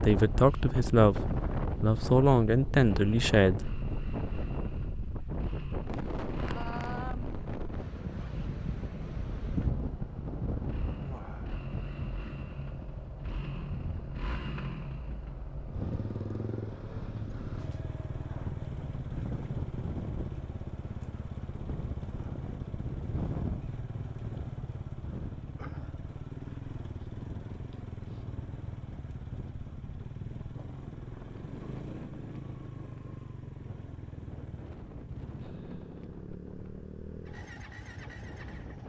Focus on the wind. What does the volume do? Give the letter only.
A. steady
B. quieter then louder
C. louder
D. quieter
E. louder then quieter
D.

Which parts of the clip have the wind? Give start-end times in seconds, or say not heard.
0.0-38.8.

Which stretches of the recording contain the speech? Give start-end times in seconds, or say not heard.
0.0-3.6.